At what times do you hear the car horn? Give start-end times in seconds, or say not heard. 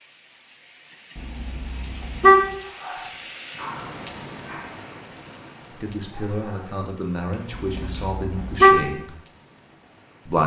1.1-2.5, 7.5-8.9.